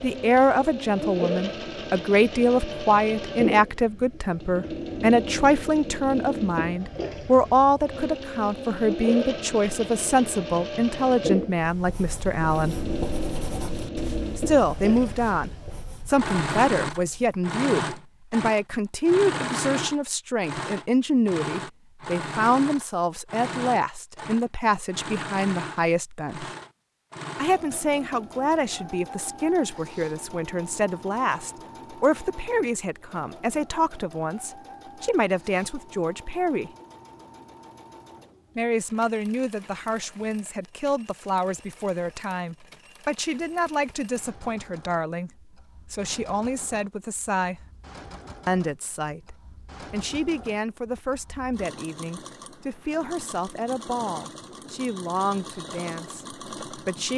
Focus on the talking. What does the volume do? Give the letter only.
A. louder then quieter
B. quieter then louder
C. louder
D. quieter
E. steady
D.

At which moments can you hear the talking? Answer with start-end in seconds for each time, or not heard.
0.0-12.8, 14.3-26.5, 27.4-36.7, 38.5-47.6, 48.5-57.1.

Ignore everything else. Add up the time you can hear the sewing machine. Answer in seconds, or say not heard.
57 s.